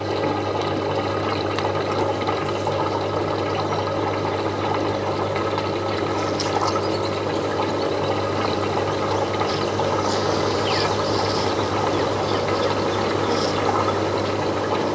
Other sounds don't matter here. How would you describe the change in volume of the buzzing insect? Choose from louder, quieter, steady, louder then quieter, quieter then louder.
louder.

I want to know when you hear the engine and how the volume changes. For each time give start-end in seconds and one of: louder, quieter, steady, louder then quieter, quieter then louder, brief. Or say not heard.
0.0-14.8 steady.